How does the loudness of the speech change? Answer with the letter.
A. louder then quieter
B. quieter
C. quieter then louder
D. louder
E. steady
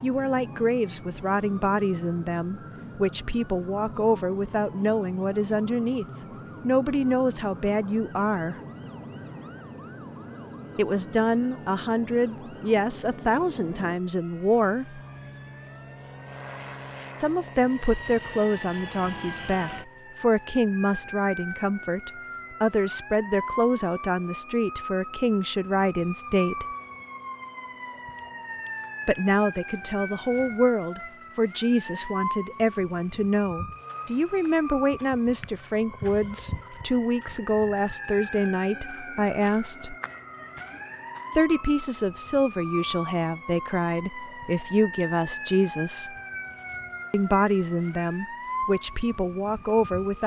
E.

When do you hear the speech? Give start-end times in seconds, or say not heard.
0.0-8.6, 10.8-15.0, 17.2-26.6, 29.1-40.0, 41.4-46.1, 47.1-50.2.